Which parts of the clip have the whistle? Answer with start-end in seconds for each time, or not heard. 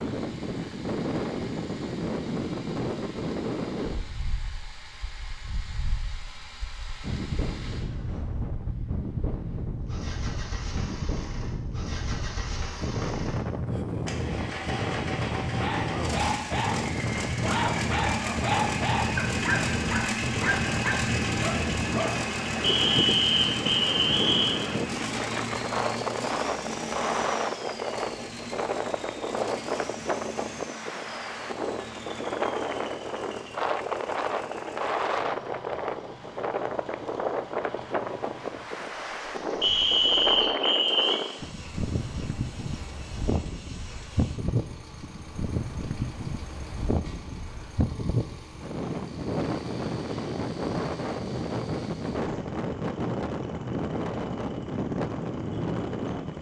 22.6-24.6, 39.6-41.2.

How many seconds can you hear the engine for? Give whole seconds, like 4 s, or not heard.
56 s.